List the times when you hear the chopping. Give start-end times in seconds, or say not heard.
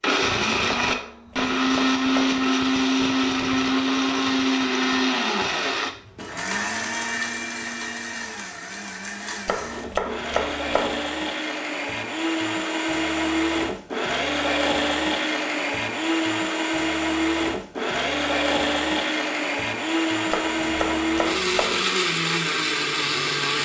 0.8-2.4, 9.4-11.0, 20.3-21.9.